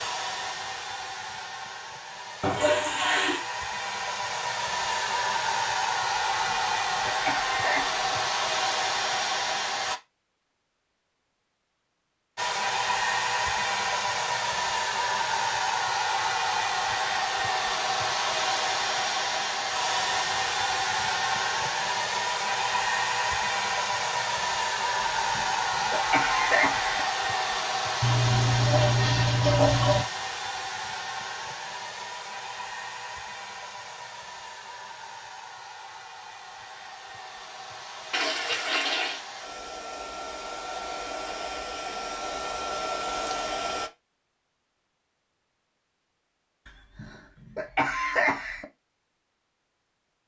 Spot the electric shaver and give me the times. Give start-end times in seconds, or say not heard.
not heard.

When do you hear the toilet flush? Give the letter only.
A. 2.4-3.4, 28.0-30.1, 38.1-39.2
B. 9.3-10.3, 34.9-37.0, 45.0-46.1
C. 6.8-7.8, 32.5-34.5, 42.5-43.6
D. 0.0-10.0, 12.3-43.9
A.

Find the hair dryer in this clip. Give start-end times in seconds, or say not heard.
0.0-10.0, 12.3-43.9.